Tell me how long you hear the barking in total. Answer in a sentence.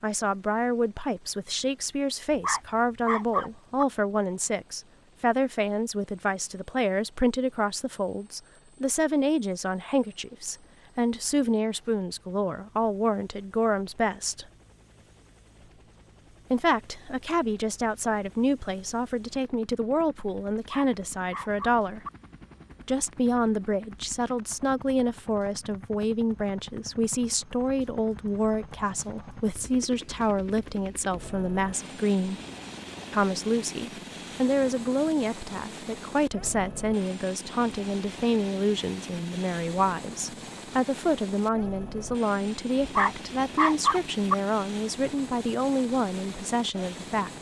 The barking can be heard for 5 seconds in total.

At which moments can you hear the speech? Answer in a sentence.
You can hear the speech from 0.0 to 14.4 s, from 16.5 to 22.0 s, from 22.9 to 32.4 s and from 33.1 to 47.3 s.